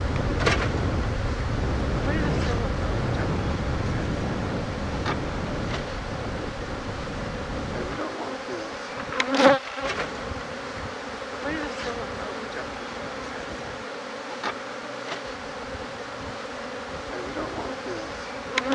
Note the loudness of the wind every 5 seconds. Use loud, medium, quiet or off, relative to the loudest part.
loud, medium, quiet, quiet.